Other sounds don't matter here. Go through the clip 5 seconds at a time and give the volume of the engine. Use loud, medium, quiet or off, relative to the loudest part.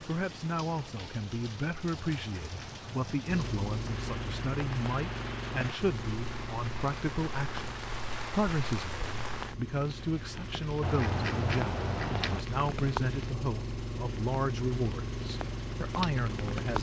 loud, medium, loud, loud.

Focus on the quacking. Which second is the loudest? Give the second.
11 s.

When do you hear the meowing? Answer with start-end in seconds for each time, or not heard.
not heard.